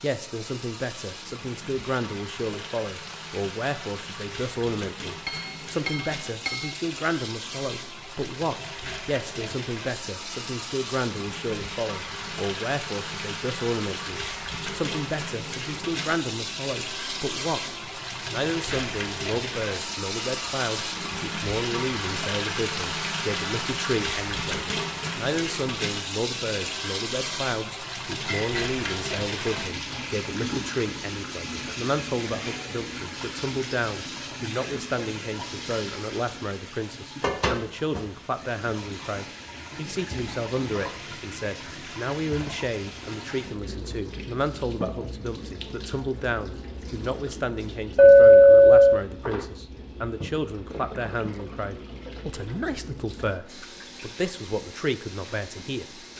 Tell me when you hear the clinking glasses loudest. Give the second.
48 s.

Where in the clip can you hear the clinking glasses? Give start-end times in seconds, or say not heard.
5.2-6.8, 28.2-29.0, 48.0-49.0.